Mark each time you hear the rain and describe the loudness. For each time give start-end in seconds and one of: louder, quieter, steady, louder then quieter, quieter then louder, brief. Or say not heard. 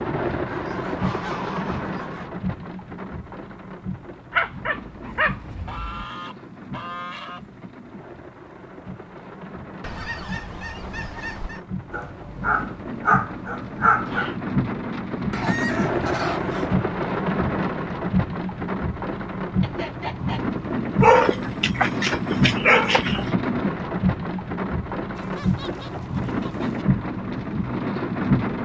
0.0-28.6 quieter then louder.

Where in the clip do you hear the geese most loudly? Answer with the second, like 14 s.
16 s.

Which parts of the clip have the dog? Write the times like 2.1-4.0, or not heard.
4.3-6.0, 11.9-14.3, 21.0-23.2.